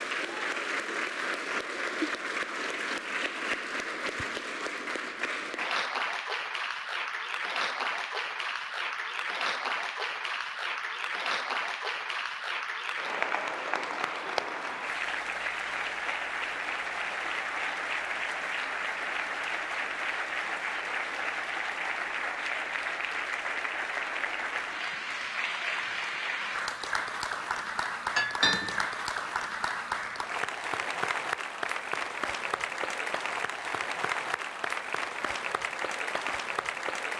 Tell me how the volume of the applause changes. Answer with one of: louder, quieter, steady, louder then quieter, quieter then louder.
steady.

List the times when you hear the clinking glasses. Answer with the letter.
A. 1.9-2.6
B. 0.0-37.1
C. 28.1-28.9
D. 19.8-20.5
C.